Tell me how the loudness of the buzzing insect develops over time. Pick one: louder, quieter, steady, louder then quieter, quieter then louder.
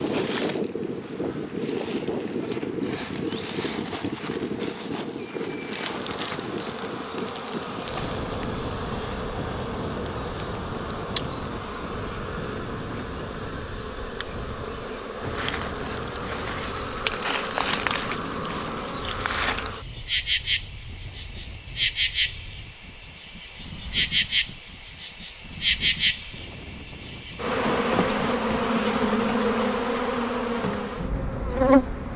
louder.